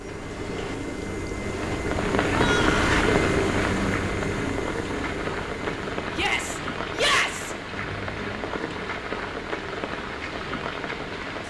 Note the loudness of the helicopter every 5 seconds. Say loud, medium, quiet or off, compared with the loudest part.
loud, medium, quiet.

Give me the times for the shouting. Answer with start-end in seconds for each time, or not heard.
2.2-3.1, 6.1-7.5.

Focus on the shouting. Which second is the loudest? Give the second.
7 s.